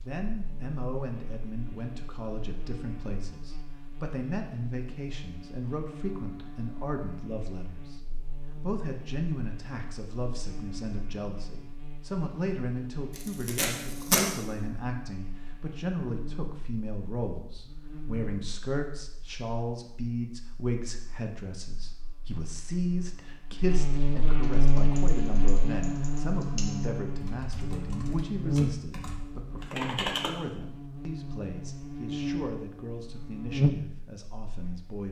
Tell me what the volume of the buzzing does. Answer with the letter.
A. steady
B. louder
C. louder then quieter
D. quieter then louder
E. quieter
B.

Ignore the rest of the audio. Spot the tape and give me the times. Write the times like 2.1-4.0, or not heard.
13.2-14.2.